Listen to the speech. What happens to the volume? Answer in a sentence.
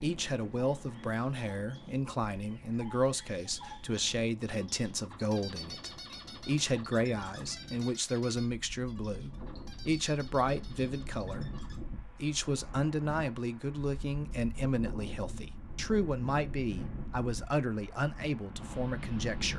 The loudness of the speech stays about the same.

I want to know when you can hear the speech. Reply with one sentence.
The speech can be heard from 0.0 to 19.5 s.